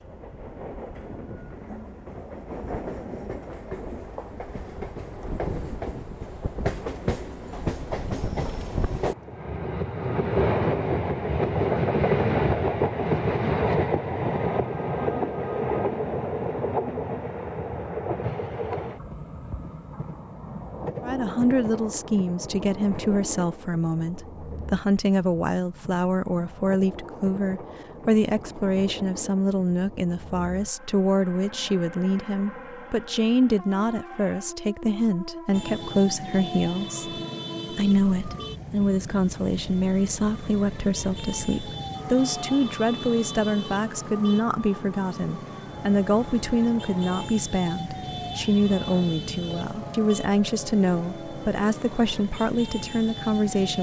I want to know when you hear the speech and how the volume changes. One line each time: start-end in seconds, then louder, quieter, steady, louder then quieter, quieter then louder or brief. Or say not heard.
21.1-53.7 steady.